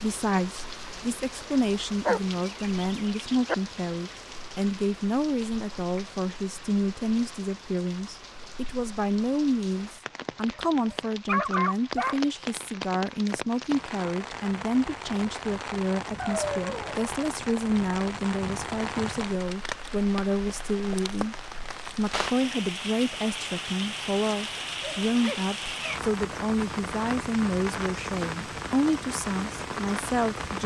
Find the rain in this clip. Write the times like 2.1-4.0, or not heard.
0.0-30.6.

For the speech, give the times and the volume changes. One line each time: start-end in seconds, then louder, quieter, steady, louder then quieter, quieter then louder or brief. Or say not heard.
0.0-30.6 steady.